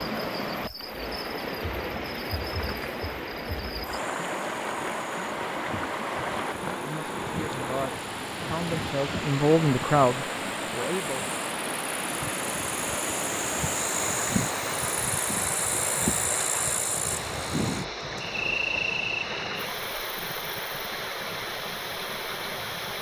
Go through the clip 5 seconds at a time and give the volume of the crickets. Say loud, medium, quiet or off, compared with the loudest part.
medium, medium, loud, loud, quiet.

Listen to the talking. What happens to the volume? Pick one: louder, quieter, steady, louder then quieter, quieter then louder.
louder then quieter.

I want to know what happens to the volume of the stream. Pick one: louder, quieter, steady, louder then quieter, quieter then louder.
steady.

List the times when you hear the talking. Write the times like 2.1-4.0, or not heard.
6.8-11.2.